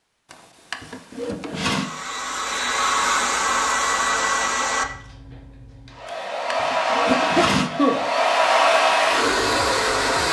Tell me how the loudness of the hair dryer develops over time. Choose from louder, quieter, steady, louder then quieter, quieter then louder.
quieter then louder.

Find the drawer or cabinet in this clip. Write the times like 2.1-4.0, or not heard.
0.3-1.9, 6.0-7.7.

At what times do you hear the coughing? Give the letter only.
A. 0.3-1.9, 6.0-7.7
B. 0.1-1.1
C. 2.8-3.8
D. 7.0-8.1
D.